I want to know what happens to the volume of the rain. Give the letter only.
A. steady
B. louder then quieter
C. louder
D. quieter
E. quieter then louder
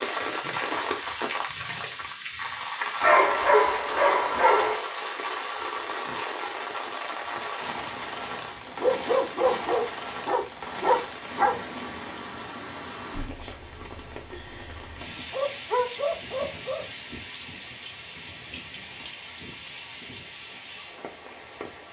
D.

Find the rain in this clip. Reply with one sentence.
The rain can be heard from 0.0 to 21.8 s.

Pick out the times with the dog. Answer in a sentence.
You can hear the dog from 3.0 to 4.8 s, from 8.8 to 11.6 s and from 15.3 to 16.8 s.